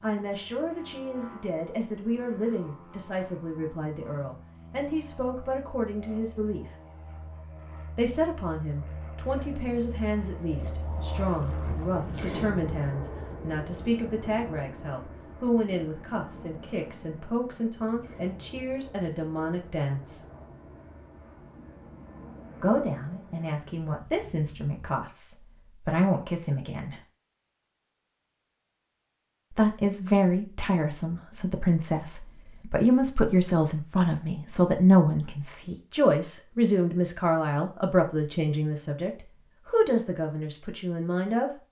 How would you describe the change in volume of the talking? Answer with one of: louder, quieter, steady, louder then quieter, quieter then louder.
louder.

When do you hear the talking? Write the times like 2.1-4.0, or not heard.
0.0-6.7, 8.0-20.2, 22.6-27.0, 29.5-41.5.